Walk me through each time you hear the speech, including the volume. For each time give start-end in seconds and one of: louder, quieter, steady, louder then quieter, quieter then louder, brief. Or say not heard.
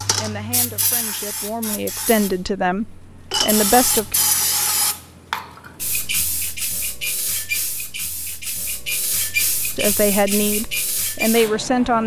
0.0-4.2 louder
9.8-12.0 brief.